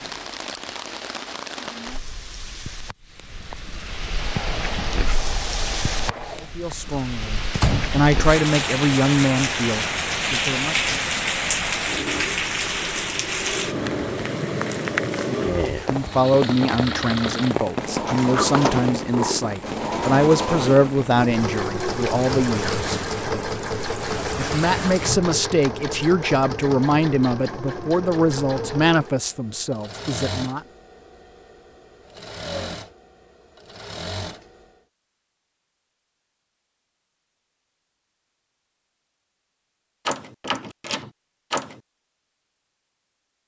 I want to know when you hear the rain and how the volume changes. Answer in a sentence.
You can hear the rain from 0.0 to 25.3 s, getting louder then quieter.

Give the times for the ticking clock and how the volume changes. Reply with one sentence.
The ticking clock can't be heard in this clip.